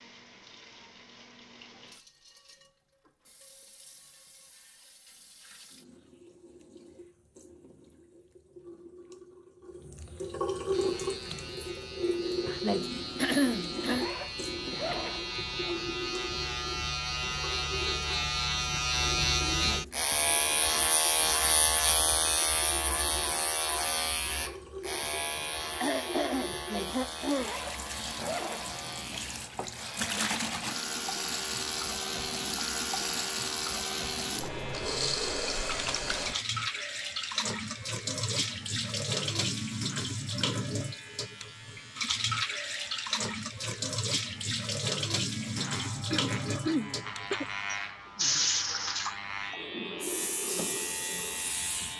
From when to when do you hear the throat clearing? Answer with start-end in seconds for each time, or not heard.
13.2-14.1, 25.8-27.5, 46.1-47.5.